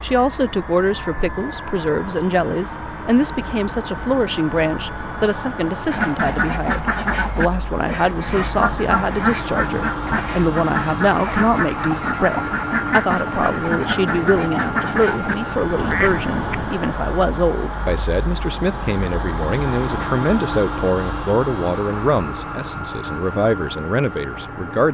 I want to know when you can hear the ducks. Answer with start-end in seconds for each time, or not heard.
5.8-16.7.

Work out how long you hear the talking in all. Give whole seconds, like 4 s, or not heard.
25 s.